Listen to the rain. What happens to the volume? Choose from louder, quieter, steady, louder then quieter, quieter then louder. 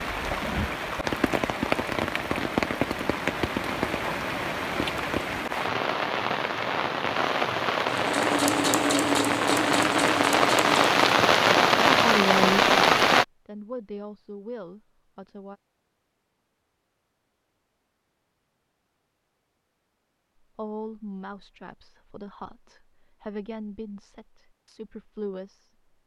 louder.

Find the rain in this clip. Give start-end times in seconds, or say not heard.
0.0-13.2.